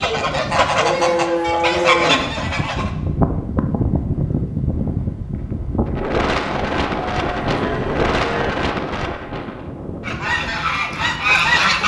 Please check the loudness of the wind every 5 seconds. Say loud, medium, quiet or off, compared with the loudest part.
loud, loud, medium.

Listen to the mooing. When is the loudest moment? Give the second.
2 s.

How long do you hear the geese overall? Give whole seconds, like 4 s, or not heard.
5 s.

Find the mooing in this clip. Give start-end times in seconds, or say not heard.
0.8-2.3, 6.5-8.5.